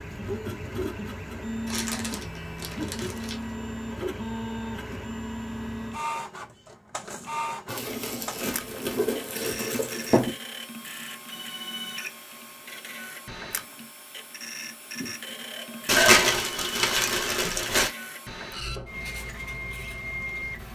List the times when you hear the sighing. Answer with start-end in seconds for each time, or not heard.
15.0-16.2.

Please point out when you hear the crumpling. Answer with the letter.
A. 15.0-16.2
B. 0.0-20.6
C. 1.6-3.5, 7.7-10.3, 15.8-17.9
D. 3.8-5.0
C.